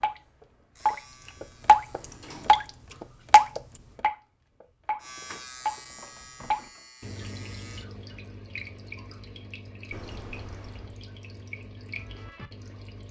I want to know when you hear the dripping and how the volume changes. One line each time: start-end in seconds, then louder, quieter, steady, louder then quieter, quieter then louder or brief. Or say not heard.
0.0-13.0 quieter.